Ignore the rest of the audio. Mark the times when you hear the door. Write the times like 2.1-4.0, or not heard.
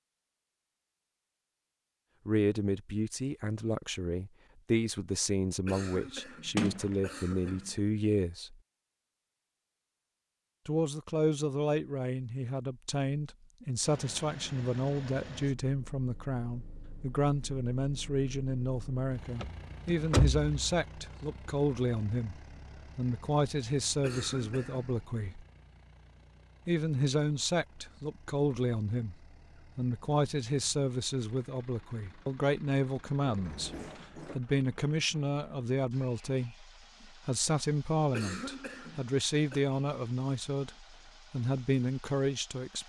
6.5-7.7, 19.4-20.6, 33.2-34.4.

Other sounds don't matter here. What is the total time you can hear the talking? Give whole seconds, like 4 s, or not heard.
37 s.